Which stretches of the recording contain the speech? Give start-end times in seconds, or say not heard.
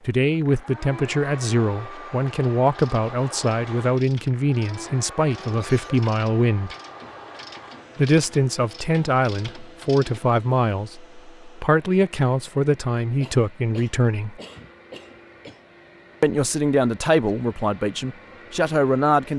0.1-6.8, 8.0-14.4, 16.2-19.3.